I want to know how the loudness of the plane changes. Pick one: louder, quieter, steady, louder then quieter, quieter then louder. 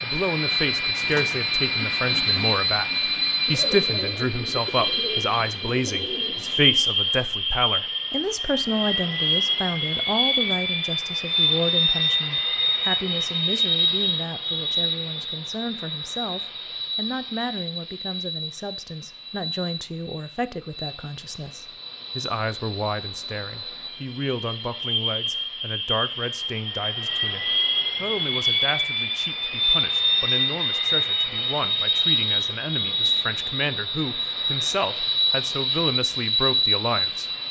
quieter then louder.